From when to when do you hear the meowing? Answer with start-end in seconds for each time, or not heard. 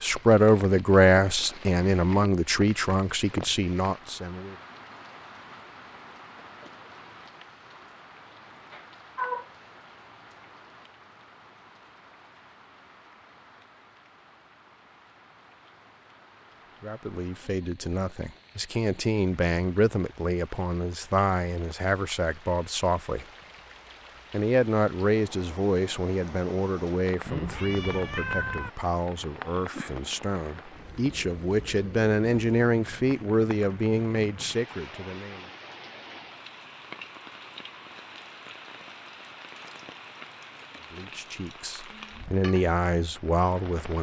8.7-9.4, 27.2-28.7.